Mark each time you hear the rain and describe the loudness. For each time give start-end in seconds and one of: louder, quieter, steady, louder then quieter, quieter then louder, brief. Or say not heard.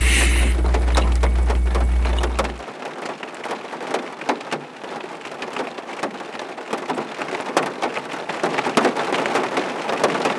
0.0-10.3 louder.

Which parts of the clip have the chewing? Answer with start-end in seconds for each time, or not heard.
0.0-2.5.